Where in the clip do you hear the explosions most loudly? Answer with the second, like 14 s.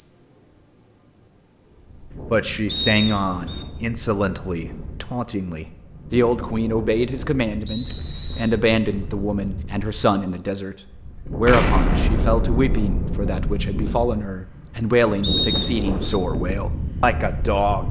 12 s.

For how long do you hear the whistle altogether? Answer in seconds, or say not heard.
3 s.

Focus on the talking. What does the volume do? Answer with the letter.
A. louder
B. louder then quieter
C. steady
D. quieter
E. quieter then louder
C.